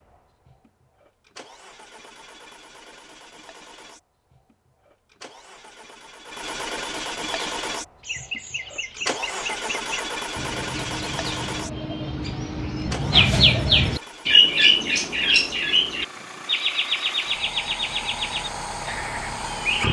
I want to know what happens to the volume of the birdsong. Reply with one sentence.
The loudness of the birdsong goes up, then down.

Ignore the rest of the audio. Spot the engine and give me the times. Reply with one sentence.
The engine can be heard from 0.0 to 19.8 s.